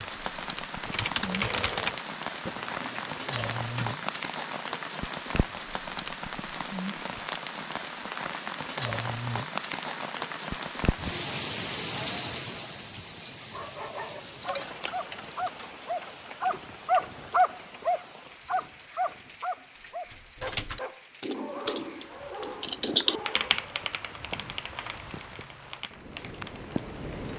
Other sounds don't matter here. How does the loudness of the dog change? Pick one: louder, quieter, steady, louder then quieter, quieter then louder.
louder then quieter.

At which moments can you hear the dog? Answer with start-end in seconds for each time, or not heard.
13.5-23.7.